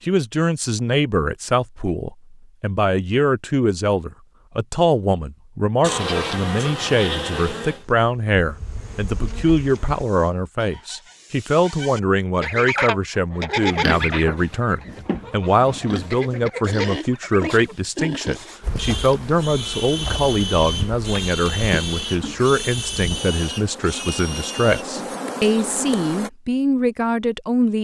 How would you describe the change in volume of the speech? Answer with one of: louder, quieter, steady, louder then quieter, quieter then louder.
steady.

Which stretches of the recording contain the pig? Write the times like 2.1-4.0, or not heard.
13.7-24.9.